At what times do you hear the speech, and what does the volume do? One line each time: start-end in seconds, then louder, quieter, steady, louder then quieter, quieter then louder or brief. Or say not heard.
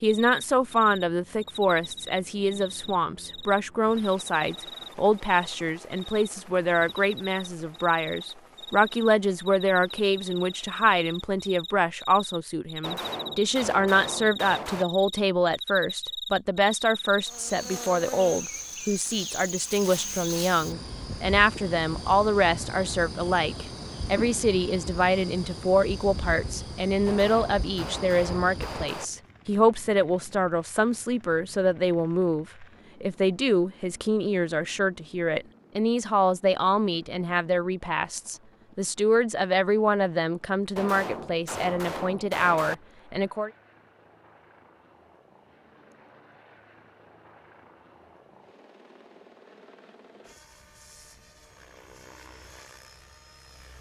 0.0-43.5 steady.